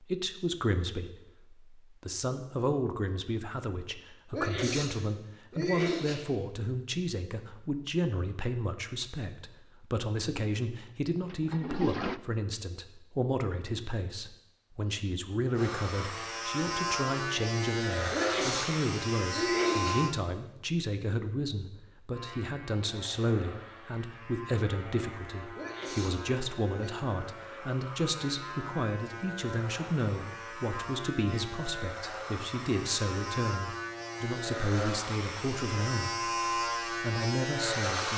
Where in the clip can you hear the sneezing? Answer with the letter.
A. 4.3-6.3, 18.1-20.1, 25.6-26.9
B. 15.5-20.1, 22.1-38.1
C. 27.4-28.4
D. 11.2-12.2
A.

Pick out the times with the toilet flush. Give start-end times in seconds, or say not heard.
11.2-12.2.